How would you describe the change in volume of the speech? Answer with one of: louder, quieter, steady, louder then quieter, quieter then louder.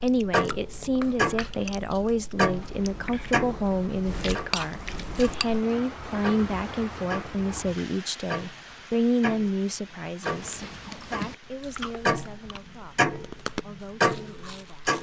quieter.